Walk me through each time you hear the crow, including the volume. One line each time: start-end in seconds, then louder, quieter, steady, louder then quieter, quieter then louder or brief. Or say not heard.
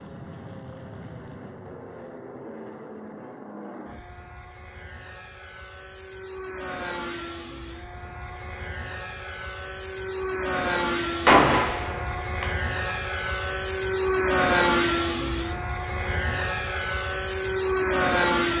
not heard.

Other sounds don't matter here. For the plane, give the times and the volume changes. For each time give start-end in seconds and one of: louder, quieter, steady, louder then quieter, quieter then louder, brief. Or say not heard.
0.0-18.5 louder.